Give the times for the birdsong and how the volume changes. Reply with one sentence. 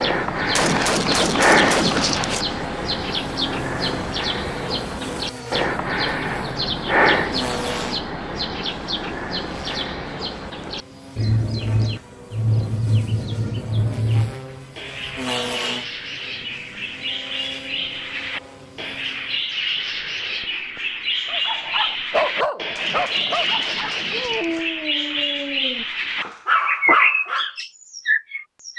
The birdsong can be heard from 0.0 to 28.7 s, at a steady volume.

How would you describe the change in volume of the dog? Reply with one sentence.
The loudness of the dog goes down, then up.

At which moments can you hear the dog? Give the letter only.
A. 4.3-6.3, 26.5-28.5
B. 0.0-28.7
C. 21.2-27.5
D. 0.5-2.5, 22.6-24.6
C.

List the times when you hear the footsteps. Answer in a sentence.
The footsteps can't be heard in this clip.